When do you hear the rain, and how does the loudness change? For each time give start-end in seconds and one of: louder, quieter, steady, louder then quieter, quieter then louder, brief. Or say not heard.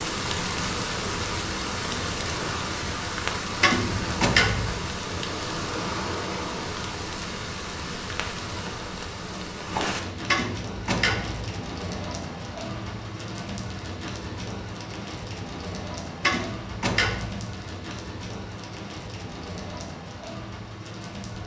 0.0-21.4 quieter.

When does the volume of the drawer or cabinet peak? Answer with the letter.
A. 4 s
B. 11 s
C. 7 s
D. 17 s
A.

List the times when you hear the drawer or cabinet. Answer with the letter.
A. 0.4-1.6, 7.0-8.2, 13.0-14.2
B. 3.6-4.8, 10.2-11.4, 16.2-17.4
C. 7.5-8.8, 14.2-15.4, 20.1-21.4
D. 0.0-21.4
B.